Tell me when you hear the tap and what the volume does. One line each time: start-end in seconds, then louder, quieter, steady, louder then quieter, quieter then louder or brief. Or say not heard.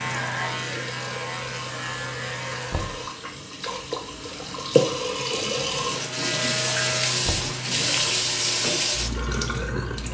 0.0-10.1 louder.